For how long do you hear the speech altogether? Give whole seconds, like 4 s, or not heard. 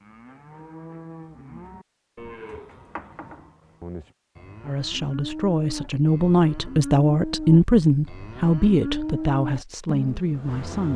6 s.